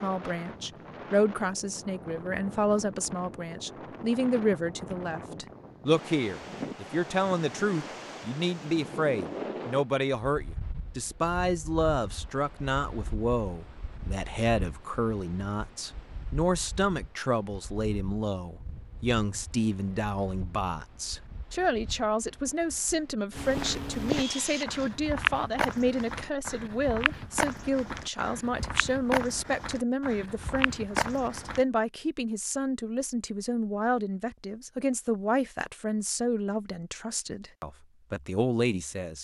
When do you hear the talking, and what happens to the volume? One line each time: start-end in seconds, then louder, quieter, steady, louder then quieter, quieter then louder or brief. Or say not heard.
0.0-39.1 steady.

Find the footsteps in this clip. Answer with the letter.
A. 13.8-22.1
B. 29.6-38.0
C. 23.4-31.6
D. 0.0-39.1
C.